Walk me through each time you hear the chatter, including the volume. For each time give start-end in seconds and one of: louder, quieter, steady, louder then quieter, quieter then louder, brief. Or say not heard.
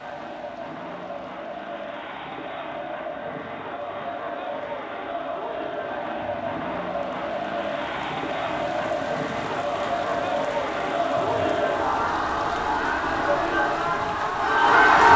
0.0-15.1 louder.